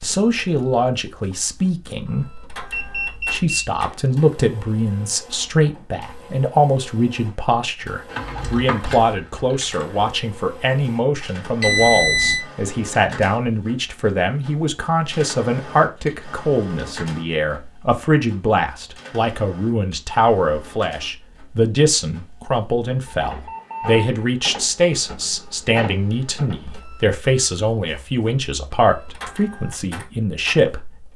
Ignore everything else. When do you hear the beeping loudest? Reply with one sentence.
The volume of the beeping peaks at 12 seconds.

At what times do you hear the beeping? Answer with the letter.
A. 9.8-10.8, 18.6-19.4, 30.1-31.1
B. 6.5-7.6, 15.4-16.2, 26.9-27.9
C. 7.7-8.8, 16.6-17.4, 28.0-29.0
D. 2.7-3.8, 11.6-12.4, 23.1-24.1
D.